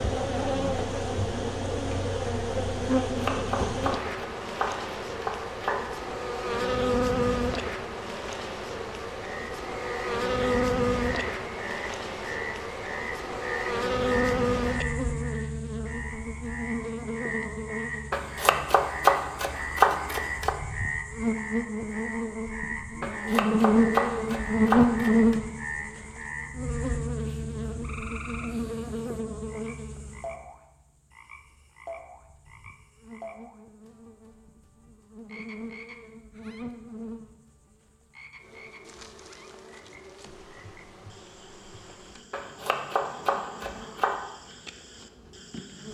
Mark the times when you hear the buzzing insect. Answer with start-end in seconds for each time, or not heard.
0.0-45.8.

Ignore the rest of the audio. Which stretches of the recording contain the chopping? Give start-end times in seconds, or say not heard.
2.9-5.8, 18.1-20.6, 23.0-25.4, 42.3-44.1.